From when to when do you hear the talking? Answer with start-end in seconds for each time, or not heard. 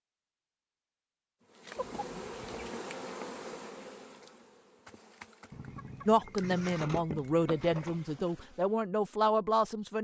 6.0-10.0.